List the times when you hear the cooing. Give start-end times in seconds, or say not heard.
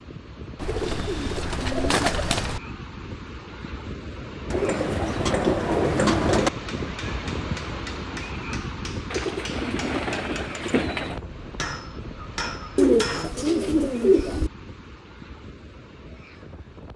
0.6-2.6, 4.5-6.5, 9.1-11.2, 12.8-14.5.